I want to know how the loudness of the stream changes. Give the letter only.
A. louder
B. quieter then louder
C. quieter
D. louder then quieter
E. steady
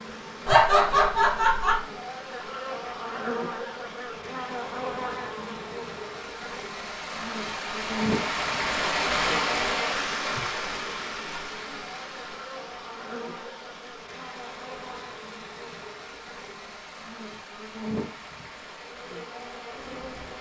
D.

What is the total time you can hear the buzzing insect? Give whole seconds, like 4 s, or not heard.
20 s.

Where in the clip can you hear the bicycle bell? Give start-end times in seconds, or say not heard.
not heard.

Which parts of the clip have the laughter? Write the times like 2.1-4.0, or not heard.
0.5-1.8.